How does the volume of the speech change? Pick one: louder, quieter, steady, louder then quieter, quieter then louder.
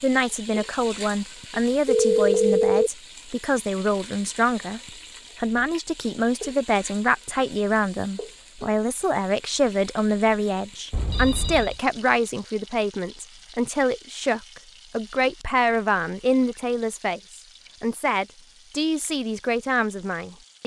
steady.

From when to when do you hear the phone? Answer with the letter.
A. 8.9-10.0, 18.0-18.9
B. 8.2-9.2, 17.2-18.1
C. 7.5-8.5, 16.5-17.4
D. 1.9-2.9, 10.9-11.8
D.